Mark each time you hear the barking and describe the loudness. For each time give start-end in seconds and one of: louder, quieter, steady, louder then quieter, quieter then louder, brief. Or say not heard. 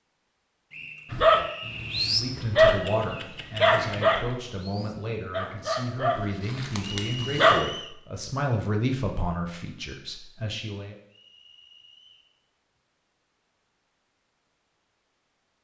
1.1-7.6 quieter.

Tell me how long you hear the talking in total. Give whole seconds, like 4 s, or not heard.
9 s.